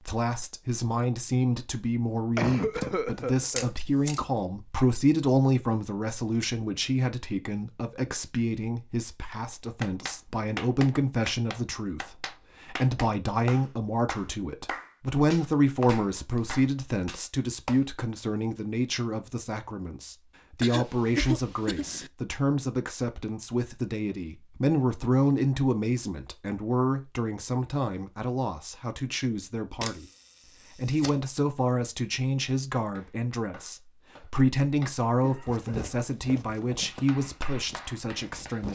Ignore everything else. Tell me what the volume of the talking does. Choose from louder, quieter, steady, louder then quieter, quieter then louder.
steady.